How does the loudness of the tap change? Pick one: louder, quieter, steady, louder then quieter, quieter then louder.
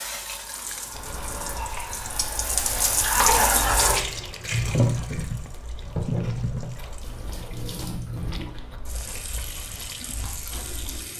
louder then quieter.